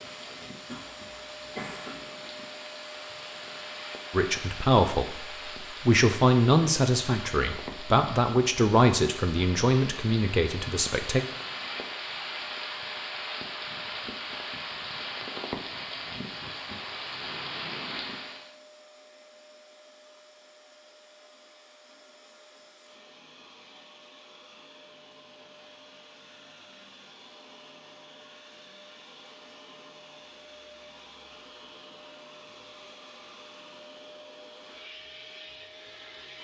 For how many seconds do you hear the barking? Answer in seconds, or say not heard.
not heard.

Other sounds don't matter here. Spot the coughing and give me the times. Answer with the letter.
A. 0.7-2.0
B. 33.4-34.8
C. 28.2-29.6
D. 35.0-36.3
A.